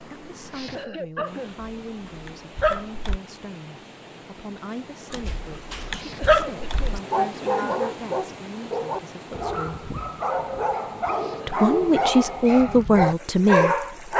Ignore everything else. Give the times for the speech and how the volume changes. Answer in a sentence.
The speech can be heard from 0.1 to 9.8 s, at a steady volume; and briefly from 11.4 to 14.1 s.